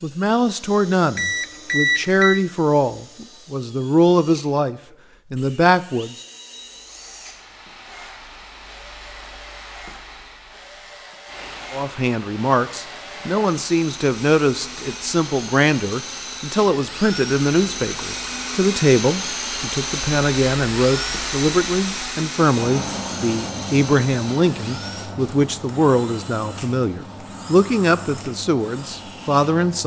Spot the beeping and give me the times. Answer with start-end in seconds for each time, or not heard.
1.1-2.4.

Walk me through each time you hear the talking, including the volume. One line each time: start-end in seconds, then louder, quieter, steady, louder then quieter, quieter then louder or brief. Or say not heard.
0.0-6.2 steady
11.7-29.8 steady.